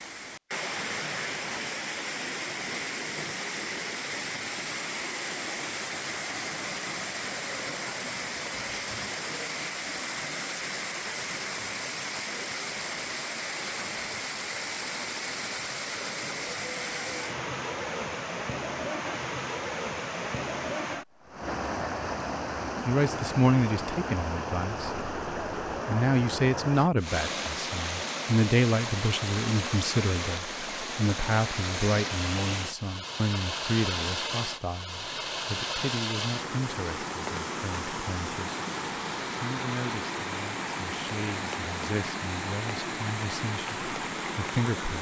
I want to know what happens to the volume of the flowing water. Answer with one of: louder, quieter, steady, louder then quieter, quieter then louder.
steady.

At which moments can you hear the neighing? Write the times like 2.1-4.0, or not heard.
not heard.